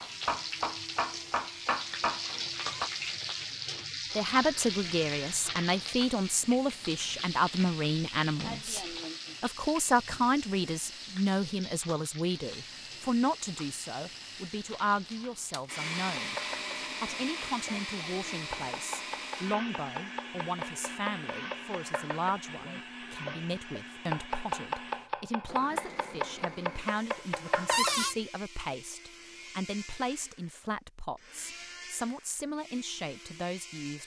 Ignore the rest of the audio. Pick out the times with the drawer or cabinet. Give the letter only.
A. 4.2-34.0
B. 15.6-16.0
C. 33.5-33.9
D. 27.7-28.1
D.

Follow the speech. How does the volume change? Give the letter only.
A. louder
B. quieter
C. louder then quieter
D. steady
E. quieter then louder
B.